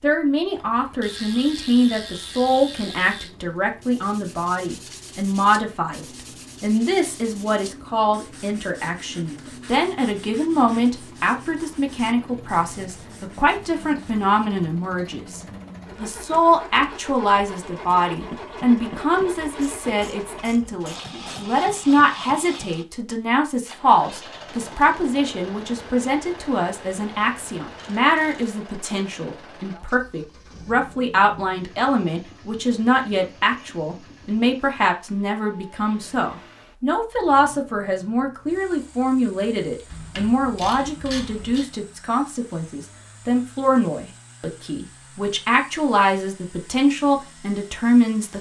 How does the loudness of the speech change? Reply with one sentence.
The volume of the speech stays about the same.